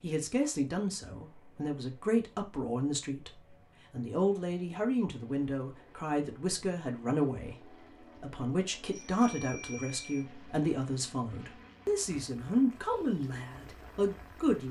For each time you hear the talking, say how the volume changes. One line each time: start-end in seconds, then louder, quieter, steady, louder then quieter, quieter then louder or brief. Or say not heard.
0.0-14.6 steady.